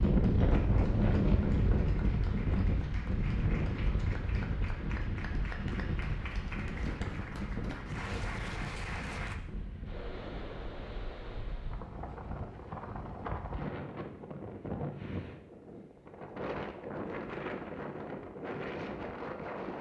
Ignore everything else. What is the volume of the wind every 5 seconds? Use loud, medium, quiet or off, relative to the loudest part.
loud, medium, medium, medium.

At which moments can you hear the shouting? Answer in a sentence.
The shouting can't be heard in this clip.